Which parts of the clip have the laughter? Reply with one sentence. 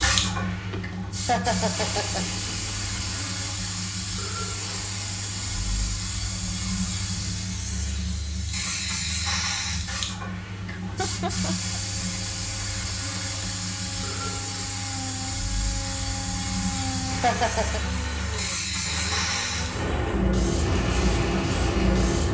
The laughter can be heard from 1.2 to 2.2 s, from 10.7 to 11.8 s and from 17.2 to 17.8 s.